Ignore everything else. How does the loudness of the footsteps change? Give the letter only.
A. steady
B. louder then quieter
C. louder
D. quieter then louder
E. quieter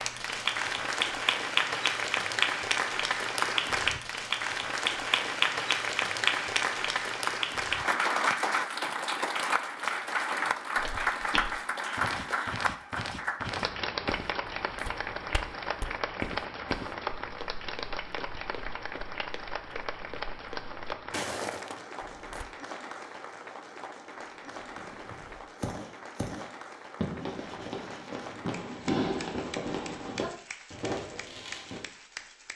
D.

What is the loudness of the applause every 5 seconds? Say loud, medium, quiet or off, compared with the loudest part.
loud, loud, loud, medium, quiet, quiet, quiet.